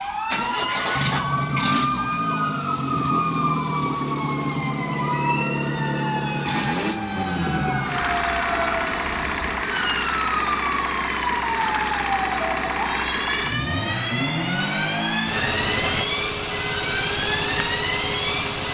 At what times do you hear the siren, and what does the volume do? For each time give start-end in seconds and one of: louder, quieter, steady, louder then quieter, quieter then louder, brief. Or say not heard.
0.0-18.6 steady.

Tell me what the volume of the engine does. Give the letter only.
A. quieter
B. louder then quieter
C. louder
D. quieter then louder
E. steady
E.